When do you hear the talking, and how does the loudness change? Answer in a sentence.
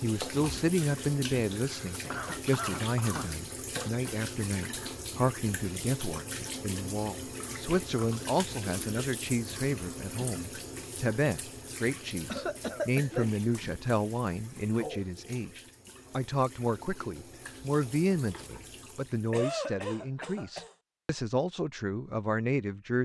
The talking can be heard from 0.0 to 23.0 s, at a steady volume.